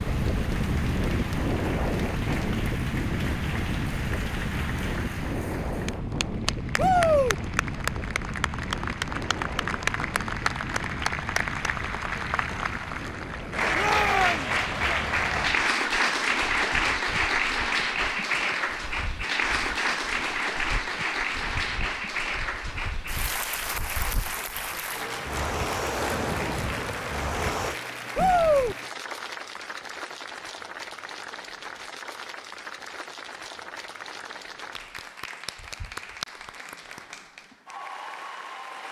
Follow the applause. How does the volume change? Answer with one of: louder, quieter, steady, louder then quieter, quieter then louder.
louder then quieter.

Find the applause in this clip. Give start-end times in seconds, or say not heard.
0.0-38.8.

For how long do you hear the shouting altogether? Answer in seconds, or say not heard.
2 s.